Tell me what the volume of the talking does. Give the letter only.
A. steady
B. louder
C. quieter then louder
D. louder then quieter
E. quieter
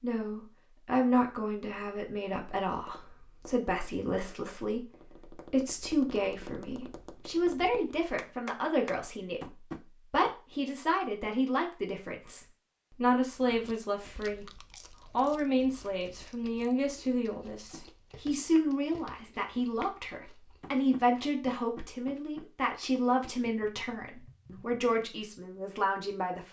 A.